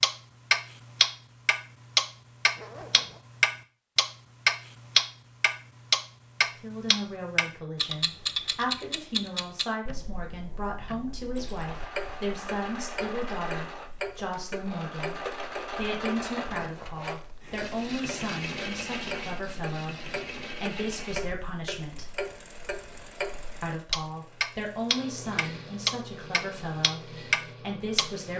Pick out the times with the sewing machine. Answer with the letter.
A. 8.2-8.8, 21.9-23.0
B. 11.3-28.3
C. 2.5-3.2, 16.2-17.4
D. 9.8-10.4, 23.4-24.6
B.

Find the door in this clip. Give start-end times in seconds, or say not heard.
not heard.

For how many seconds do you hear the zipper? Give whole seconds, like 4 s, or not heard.
2 s.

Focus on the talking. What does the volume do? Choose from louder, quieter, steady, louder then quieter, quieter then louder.
steady.